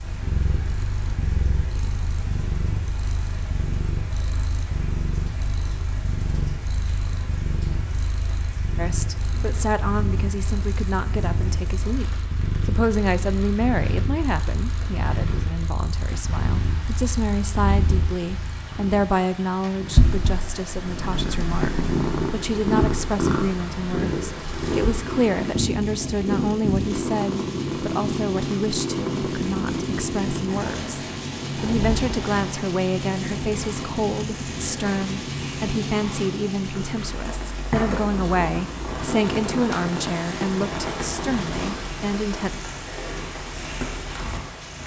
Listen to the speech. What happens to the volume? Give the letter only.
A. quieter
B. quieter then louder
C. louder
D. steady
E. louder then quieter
D.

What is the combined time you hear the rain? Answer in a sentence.
You can hear the rain for 45 seconds altogether.